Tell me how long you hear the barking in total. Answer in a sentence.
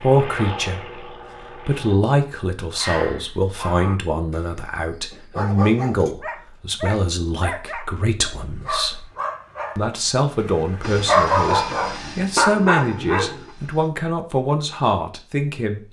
You can hear the barking for 11 seconds altogether.